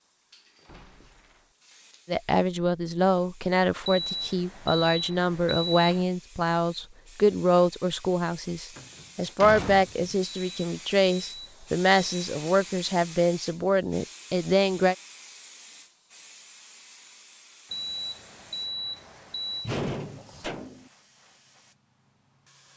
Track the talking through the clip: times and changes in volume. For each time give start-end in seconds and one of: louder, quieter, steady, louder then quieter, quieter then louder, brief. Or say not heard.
2.0-14.9 steady.